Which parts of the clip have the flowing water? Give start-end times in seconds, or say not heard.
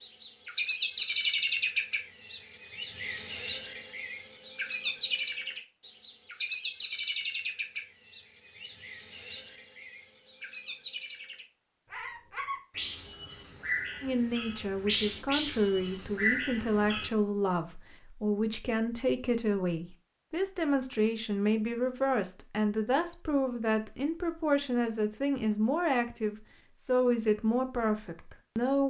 not heard.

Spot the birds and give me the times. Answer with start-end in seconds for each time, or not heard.
0.0-17.1.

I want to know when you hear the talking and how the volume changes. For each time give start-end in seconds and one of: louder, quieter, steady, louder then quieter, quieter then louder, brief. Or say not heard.
14.0-28.8 steady.